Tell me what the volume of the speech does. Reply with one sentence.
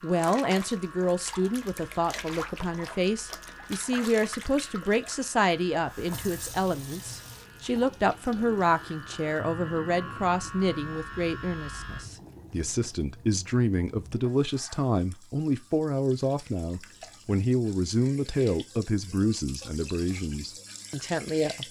The volume of the speech stays about the same.